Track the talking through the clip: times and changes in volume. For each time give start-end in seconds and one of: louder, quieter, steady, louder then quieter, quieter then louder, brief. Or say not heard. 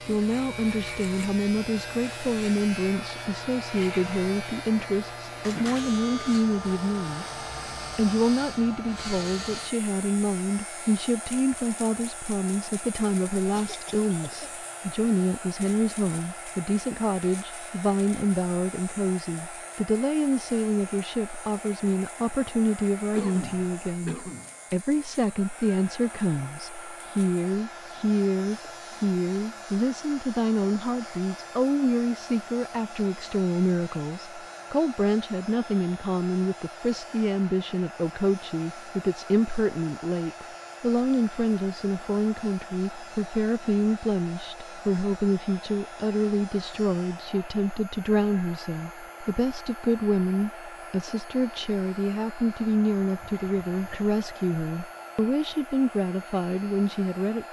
0.1-7.3 steady
8.0-57.4 steady.